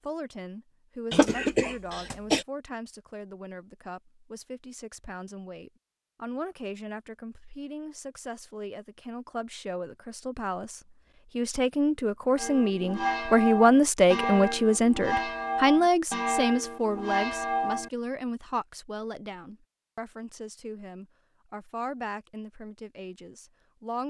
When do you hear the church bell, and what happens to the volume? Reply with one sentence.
The church bell can be heard from 12.3 to 17.9 s, at a steady volume.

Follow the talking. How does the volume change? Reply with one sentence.
The volume of the talking goes up, then down.